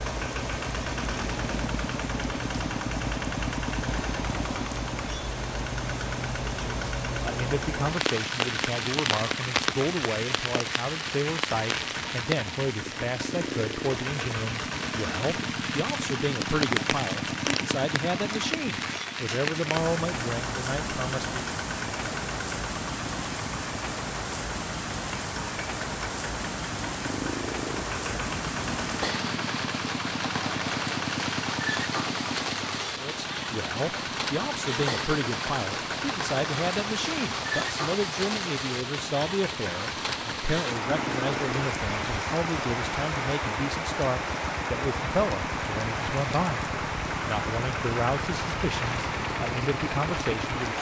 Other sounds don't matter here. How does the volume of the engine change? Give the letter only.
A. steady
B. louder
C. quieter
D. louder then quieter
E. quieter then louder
A.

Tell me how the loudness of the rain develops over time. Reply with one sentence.
The loudness of the rain stays about the same.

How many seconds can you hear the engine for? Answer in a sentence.
The engine can be heard for 51 seconds in total.